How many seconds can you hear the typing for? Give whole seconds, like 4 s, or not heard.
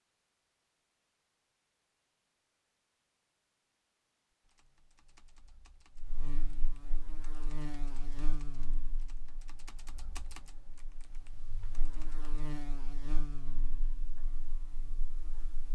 8 s.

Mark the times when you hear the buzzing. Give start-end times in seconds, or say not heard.
6.0-15.7.